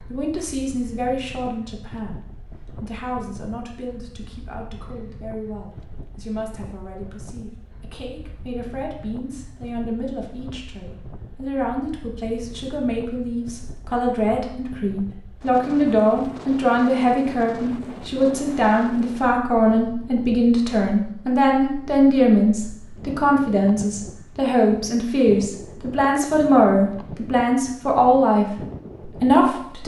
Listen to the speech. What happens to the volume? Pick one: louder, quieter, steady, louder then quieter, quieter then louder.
louder.